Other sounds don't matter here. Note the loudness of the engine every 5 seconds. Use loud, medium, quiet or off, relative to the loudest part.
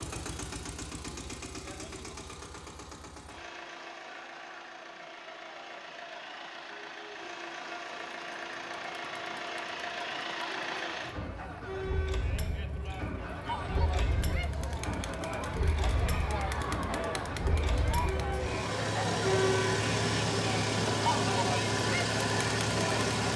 quiet, medium, medium, medium, loud.